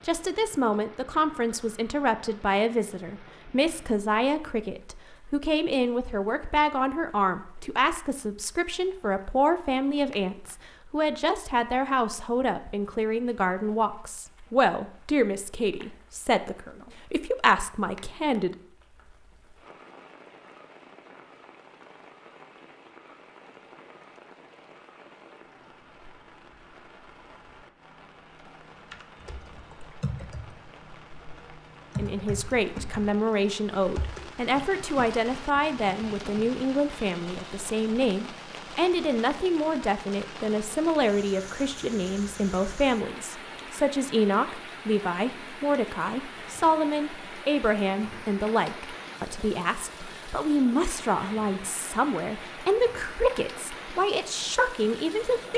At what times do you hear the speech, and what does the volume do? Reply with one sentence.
You can hear the speech from 0.1 to 18.6 s, at a steady volume; and from 31.9 to 55.5 s, at a steady volume.